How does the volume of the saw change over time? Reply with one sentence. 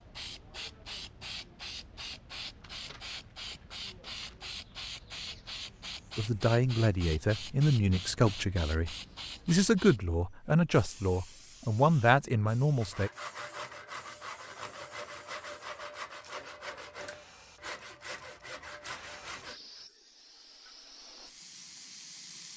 The loudness of the saw stays about the same.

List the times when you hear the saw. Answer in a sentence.
The saw can be heard from 12.8 to 19.6 s.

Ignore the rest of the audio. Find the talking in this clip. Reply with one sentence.
You can hear the talking from 6.2 to 13.1 s.